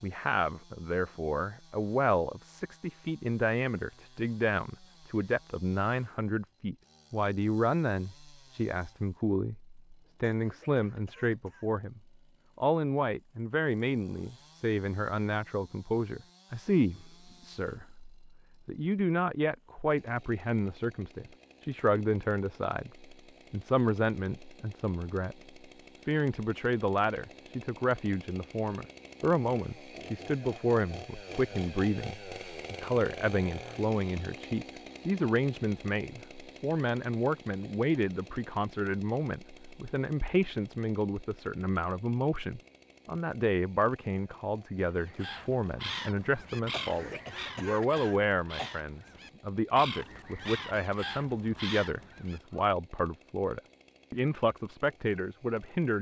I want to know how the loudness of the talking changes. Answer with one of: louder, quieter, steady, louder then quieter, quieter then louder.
steady.